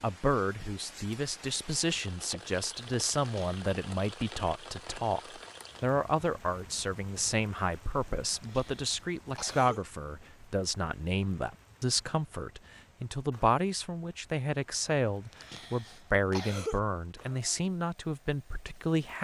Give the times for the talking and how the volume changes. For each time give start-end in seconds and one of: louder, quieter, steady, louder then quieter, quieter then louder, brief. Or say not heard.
0.0-19.1 steady.